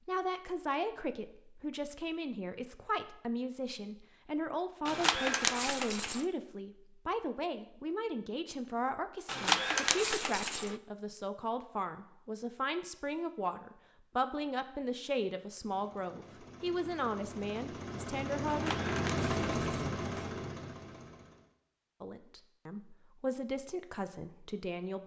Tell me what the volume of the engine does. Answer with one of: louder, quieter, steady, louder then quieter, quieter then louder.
louder then quieter.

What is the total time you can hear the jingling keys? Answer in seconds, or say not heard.
5 s.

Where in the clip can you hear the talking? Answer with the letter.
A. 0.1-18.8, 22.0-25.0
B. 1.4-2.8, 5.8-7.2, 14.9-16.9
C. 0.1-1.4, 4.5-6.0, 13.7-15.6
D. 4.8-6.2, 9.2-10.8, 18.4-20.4
A.